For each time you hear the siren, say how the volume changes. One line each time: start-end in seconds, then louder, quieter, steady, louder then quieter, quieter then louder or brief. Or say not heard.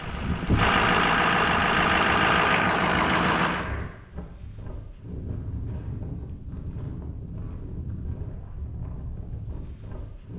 not heard.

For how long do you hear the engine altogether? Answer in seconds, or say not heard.
4 s.